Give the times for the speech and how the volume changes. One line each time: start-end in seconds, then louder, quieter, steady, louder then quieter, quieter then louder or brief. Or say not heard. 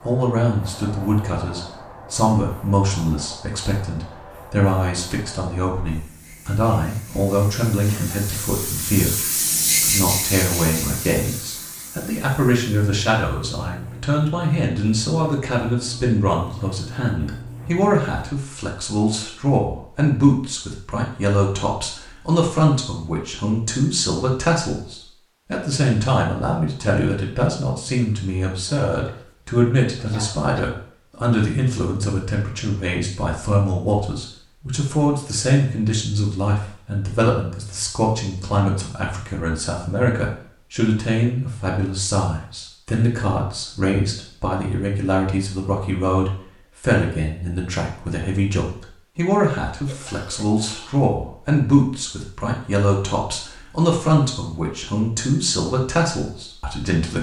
0.0-57.1 steady.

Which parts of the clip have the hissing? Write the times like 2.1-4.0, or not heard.
0.0-18.3.